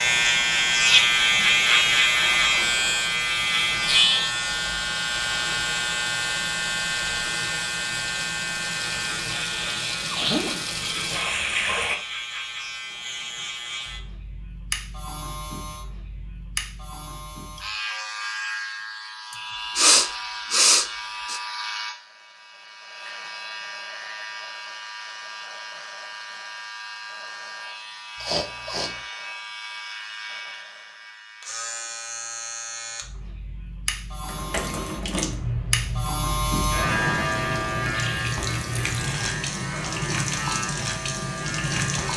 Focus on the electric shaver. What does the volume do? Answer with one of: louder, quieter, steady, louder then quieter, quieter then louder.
quieter then louder.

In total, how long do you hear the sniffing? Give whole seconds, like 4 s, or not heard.
4 s.